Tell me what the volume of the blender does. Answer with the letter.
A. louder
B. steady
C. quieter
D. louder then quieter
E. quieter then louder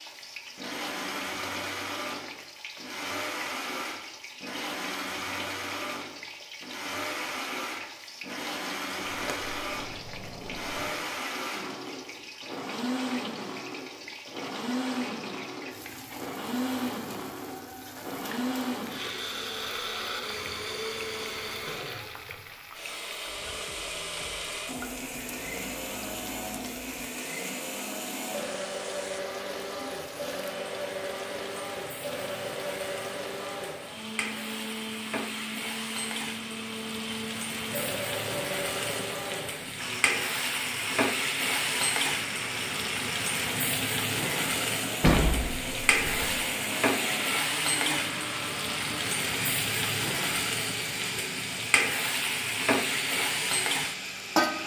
B.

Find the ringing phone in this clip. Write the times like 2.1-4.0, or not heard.
not heard.